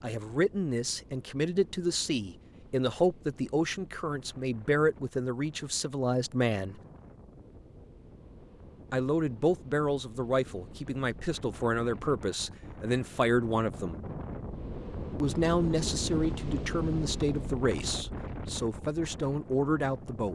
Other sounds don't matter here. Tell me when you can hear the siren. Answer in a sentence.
The siren can't be heard in this clip.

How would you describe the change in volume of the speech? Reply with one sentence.
The loudness of the speech stays about the same.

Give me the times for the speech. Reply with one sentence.
You can hear the speech from 0.0 to 6.8 s, from 8.9 to 14.0 s and from 15.2 to 20.3 s.